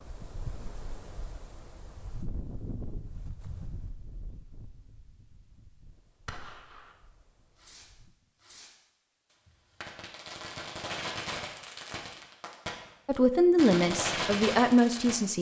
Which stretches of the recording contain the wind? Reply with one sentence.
The wind can be heard from 0.0 to 8.2 s.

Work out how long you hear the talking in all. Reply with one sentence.
You can hear the talking for 2 seconds altogether.